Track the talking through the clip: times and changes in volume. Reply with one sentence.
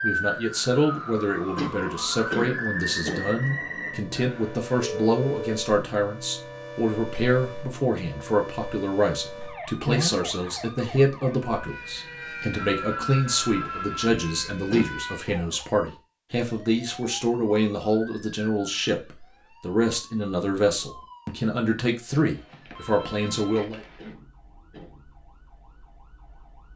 The talking can be heard from 0.0 to 23.8 s, at a steady volume.